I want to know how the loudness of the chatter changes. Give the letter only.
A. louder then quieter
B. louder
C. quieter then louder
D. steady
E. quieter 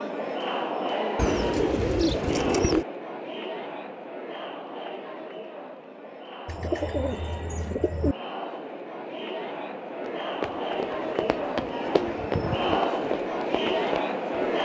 C.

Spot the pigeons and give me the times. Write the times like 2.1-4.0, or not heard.
1.1-2.9, 6.5-8.2, 11.2-12.8.